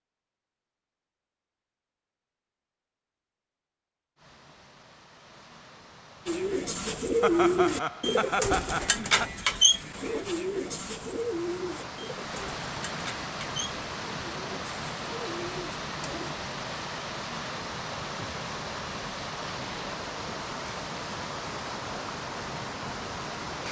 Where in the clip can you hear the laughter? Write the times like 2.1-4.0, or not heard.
7.2-9.3.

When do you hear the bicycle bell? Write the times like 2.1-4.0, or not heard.
not heard.